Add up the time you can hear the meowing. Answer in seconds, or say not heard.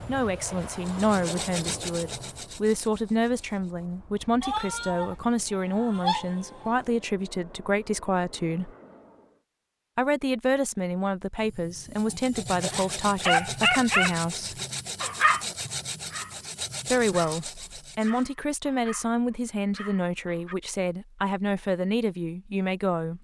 2 s.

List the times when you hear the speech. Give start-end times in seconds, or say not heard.
0.1-8.7, 9.9-14.6, 16.9-23.2.